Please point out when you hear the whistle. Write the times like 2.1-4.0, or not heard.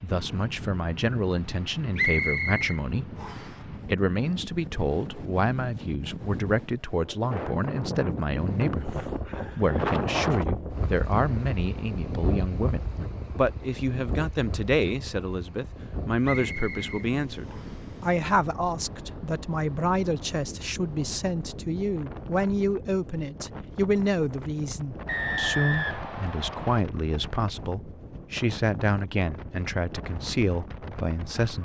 1.9-3.5, 16.2-17.8, 25.1-26.8.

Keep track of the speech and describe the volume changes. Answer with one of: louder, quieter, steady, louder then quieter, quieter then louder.
steady.